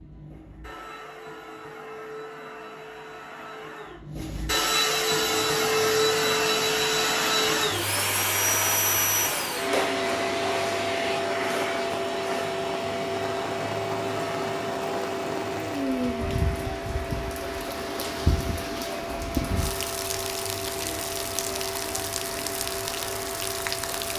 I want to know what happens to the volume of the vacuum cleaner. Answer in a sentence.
The volume of the vacuum cleaner goes up, then down.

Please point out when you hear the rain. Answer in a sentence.
The rain can be heard from 5.0 to 24.1 s.